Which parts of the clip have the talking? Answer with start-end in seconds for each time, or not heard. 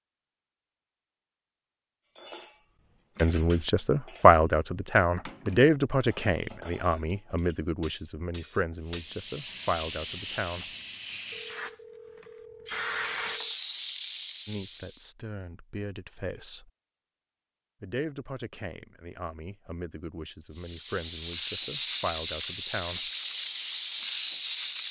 3.2-10.8, 14.4-16.7, 17.8-23.1.